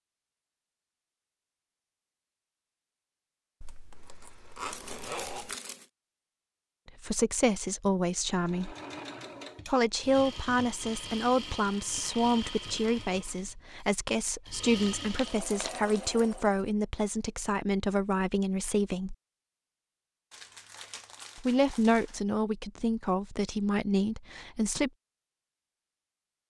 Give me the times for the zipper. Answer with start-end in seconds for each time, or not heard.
3.6-5.5.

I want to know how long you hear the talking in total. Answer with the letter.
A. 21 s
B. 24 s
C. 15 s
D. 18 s
C.